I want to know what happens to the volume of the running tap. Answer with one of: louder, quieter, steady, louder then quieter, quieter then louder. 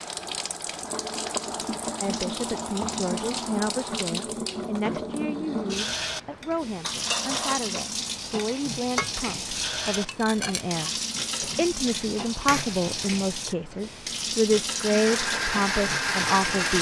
steady.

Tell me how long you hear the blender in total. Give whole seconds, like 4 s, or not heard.
2 s.